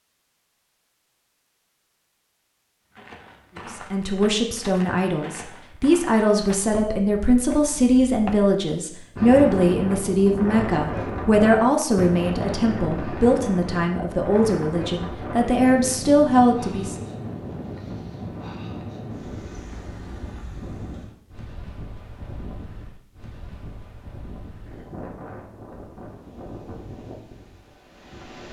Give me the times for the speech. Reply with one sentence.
The speech can be heard from 3.7 to 17.1 s.